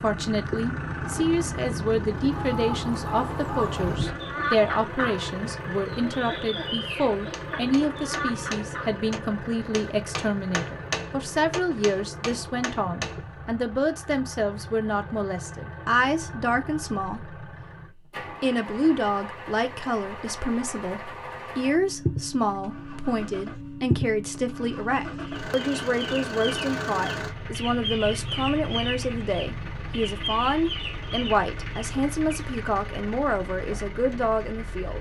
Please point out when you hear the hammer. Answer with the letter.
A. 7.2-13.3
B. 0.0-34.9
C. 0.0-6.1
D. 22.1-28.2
A.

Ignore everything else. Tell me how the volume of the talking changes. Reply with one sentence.
The volume of the talking stays about the same.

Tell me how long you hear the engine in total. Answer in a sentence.
You can hear the engine for 35 seconds altogether.